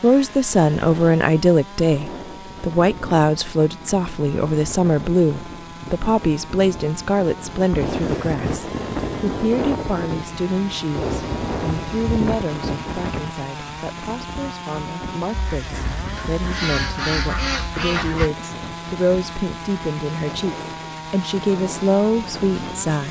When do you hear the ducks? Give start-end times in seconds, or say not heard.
15.3-18.3.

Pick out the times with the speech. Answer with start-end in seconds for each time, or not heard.
0.0-23.0.